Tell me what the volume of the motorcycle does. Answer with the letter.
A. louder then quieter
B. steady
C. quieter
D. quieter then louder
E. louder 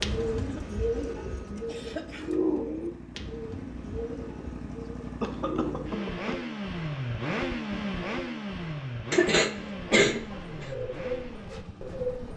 A.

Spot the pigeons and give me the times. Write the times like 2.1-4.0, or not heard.
0.0-6.0, 9.6-12.3.